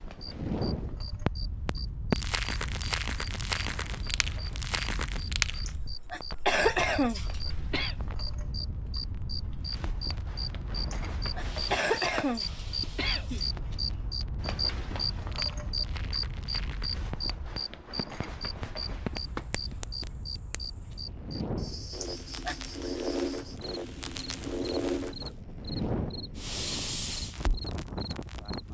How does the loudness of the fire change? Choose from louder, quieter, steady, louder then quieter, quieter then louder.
quieter then louder.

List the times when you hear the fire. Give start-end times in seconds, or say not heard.
0.1-28.6.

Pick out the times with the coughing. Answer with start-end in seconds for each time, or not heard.
5.7-8.0, 10.9-13.4, 22.0-22.6.